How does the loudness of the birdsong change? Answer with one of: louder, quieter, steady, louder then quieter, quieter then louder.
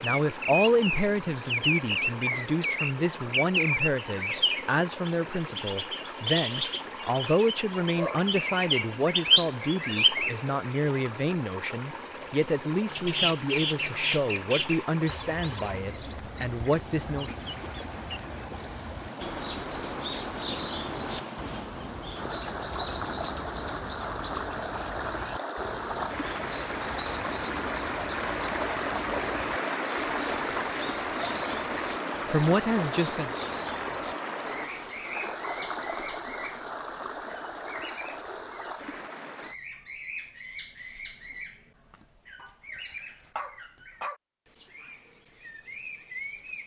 quieter.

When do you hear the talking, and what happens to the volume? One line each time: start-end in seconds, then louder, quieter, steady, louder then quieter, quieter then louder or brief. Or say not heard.
0.0-17.4 steady
32.2-33.3 brief.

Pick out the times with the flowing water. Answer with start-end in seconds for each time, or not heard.
0.0-39.5.